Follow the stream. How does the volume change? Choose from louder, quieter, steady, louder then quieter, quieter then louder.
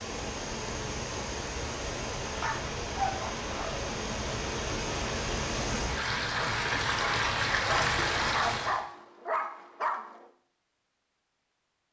louder.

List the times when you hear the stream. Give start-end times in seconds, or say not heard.
0.0-8.8.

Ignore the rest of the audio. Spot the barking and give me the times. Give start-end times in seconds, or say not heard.
2.4-3.9, 7.7-10.2.